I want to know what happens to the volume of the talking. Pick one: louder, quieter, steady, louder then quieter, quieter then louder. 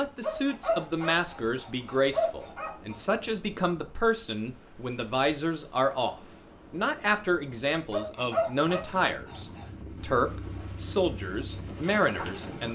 steady.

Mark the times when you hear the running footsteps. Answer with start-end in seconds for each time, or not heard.
not heard.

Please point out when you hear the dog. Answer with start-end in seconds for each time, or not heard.
0.2-3.0, 7.9-9.7.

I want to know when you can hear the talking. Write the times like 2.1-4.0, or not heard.
0.0-12.6.